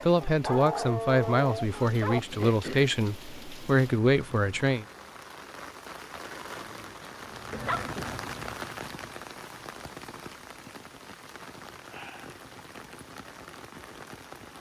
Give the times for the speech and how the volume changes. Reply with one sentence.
You can hear the speech from 0.0 to 4.8 s, getting quieter then louder.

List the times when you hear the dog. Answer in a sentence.
You can hear the dog from 0.2 to 2.2 s, from 6.5 to 7.8 s and from 11.3 to 12.4 s.